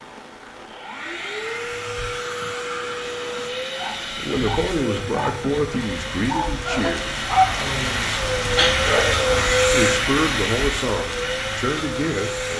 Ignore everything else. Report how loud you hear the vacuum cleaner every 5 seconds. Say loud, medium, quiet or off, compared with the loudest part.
medium, loud, loud.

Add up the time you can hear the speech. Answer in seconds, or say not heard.
6 s.